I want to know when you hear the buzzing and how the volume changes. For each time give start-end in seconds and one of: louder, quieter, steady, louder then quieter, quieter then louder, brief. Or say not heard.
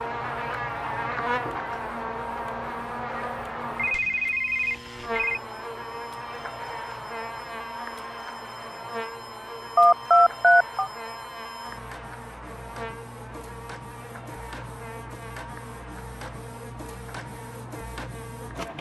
0.0-18.7 quieter.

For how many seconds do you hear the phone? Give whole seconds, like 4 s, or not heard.
3 s.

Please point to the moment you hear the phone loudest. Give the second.
10 s.